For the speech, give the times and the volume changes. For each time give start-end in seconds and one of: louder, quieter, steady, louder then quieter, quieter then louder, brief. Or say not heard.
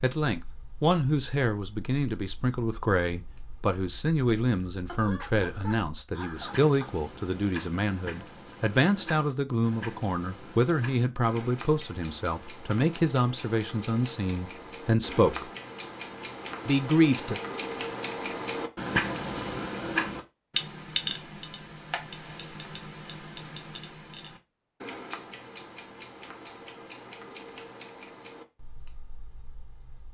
0.0-15.4 steady
16.6-17.4 brief.